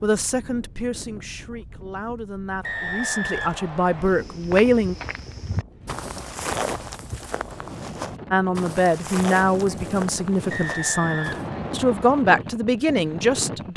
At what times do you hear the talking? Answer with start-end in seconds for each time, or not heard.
0.0-5.0, 8.3-13.7.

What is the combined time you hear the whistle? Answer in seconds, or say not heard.
3 s.